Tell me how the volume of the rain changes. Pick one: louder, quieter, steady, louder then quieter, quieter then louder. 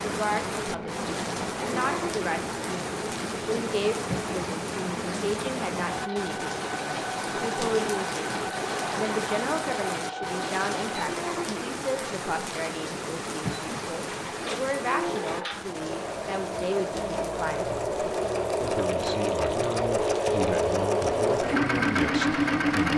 quieter.